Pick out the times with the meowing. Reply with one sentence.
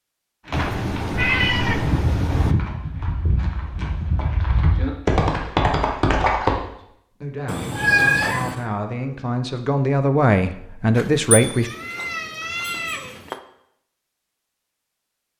The meowing can be heard from 0.5 to 2.5 s, from 7.5 to 8.7 s and from 10.9 to 13.3 s.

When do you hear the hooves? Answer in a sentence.
The hooves can be heard from 0.5 to 6.5 s.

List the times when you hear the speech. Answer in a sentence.
The speech can be heard from 6.8 to 11.7 s.